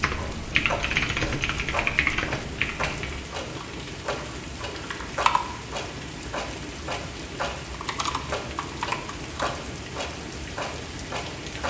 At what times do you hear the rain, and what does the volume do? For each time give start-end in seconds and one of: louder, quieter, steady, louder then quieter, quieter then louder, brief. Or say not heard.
0.0-11.6 steady.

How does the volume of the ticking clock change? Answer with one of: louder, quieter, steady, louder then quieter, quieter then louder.
steady.